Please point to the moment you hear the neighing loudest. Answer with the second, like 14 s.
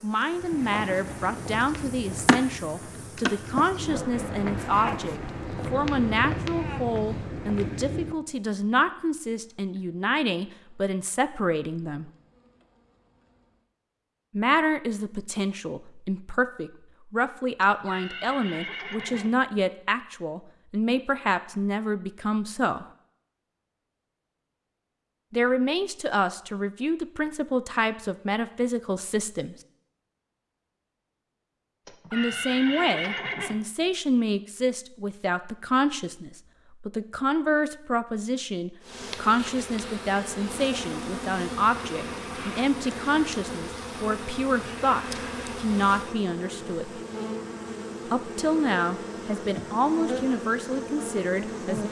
33 s.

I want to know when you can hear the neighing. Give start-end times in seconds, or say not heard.
17.6-19.4, 31.9-33.6.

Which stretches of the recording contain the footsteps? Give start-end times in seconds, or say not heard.
0.3-8.2.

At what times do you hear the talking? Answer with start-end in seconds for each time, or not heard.
0.0-12.1, 14.3-22.9, 25.3-29.6, 32.1-47.0, 48.0-51.8.